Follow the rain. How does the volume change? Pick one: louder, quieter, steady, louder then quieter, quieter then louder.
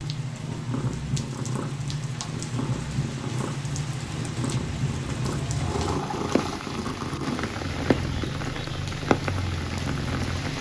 louder.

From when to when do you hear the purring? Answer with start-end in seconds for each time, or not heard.
0.0-10.5.